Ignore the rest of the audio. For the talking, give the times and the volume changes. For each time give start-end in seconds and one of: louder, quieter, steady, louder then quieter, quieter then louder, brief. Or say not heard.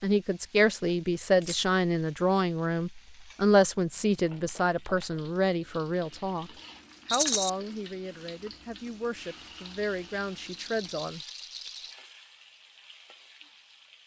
0.0-11.2 quieter.